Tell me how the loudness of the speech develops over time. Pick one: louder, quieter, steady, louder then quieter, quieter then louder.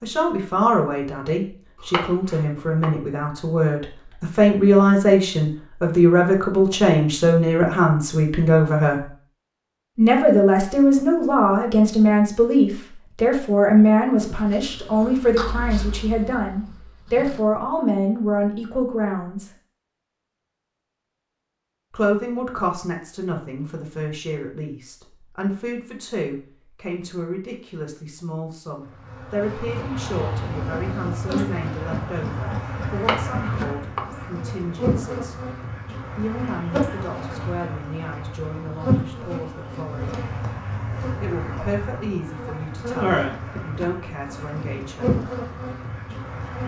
quieter.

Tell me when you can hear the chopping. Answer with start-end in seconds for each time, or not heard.
1.8-2.9, 33.0-34.0.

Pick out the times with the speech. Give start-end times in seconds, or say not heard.
0.0-9.1, 9.9-19.5, 21.9-35.4, 36.1-40.2, 41.2-45.2.